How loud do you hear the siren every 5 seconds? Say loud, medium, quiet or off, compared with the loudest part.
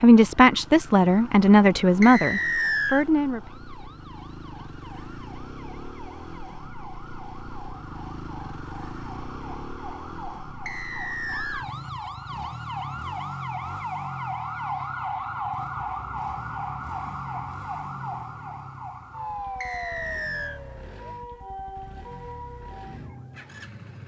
quiet, medium, loud, loud, medium.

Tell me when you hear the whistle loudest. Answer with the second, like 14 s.
3 s.